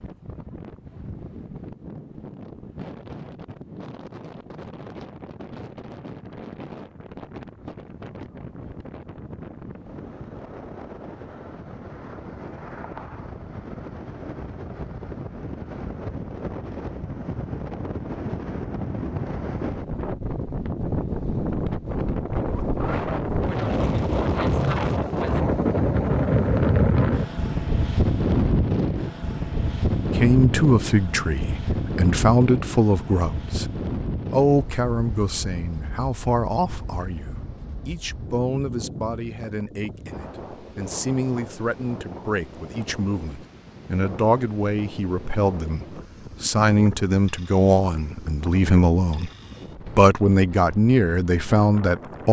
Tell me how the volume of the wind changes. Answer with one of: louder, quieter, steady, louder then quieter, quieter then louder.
louder then quieter.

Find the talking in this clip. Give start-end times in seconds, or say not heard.
29.9-33.7, 34.3-49.3, 50.0-52.2.